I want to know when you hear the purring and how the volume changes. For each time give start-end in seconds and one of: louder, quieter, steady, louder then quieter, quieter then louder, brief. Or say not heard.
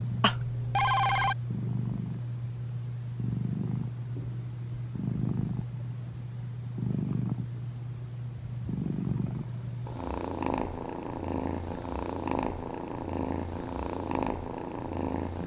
0.0-15.4 steady.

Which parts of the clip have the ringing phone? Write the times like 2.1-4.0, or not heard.
0.2-1.4.